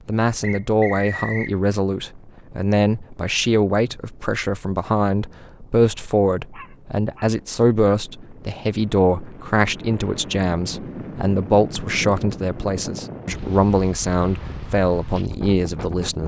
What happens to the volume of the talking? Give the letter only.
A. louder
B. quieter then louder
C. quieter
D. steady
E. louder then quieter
D.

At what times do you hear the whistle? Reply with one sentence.
The whistle can be heard from 0.4 to 1.6 s.